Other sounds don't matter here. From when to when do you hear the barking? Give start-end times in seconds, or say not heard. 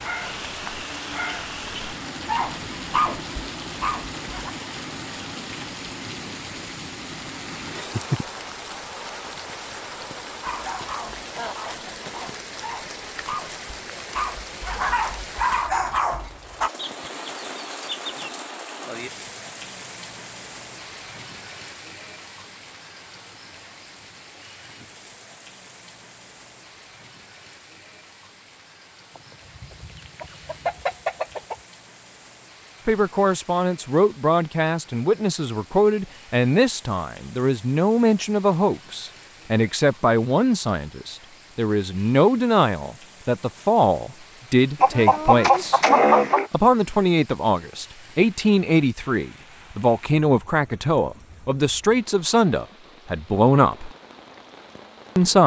0.0-4.5, 10.4-16.7.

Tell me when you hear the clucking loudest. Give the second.
46 s.